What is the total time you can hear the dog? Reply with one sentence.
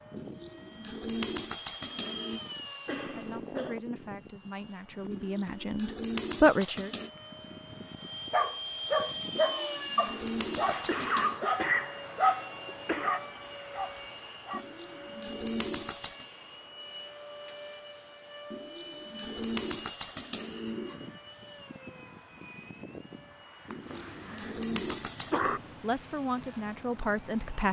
The dog can be heard for 6 seconds in total.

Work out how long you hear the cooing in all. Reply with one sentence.
The cooing can be heard for 12 seconds in total.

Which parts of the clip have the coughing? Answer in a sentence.
The coughing can be heard from 2.9 to 3.8 s, from 10.7 to 13.2 s and from 23.7 to 25.6 s.